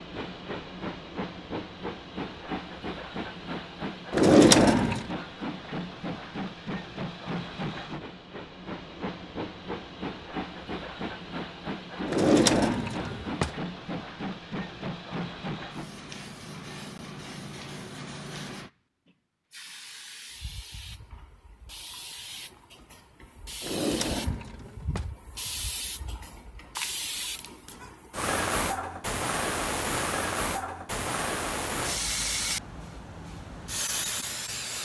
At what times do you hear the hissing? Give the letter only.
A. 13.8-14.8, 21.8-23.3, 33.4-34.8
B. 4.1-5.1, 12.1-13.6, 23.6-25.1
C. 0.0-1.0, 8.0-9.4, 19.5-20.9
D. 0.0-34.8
D.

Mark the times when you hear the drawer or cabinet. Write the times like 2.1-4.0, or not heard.
4.1-5.1, 12.1-13.6, 23.6-25.1.